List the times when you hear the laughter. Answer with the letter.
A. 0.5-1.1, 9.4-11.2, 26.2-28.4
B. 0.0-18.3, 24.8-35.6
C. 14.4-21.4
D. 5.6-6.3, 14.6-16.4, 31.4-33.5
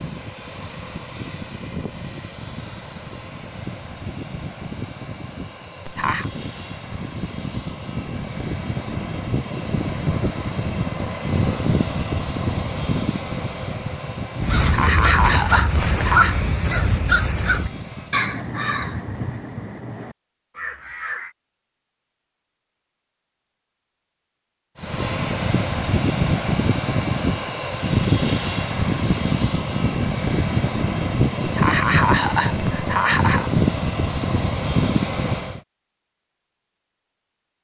D.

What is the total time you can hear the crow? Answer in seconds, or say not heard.
7 s.